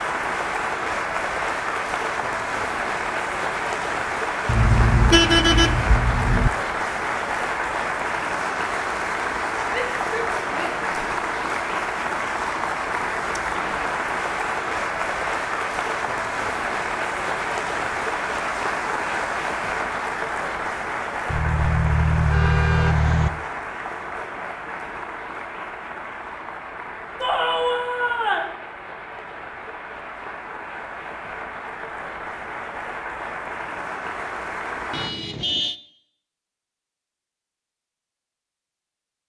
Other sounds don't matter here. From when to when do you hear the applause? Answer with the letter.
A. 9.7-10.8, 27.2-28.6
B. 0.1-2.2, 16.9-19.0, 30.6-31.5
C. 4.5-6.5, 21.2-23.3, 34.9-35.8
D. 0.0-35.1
D.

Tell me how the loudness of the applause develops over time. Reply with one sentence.
The volume of the applause goes down.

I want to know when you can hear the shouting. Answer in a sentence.
You can hear the shouting from 9.7 to 10.8 s and from 27.2 to 28.6 s.